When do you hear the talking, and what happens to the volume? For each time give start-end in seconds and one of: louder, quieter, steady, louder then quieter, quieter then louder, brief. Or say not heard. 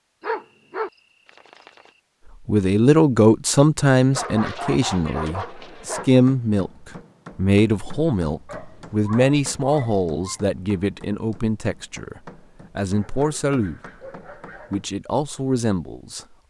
2.5-13.8 quieter
14.7-16.4 brief.